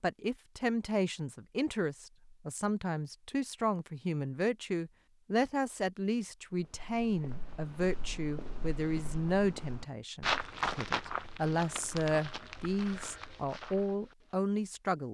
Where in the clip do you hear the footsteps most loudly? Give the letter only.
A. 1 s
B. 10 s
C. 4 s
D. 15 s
B.